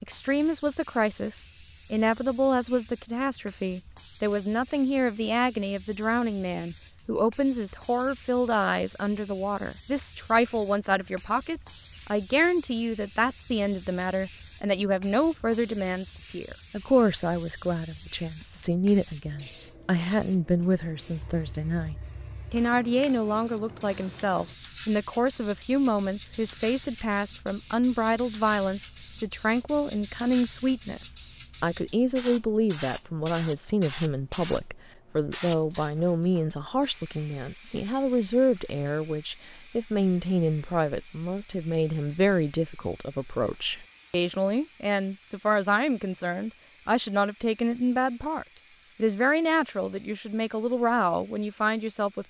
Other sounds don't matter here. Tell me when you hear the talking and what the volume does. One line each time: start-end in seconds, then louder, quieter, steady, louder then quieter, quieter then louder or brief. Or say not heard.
0.0-52.2 steady.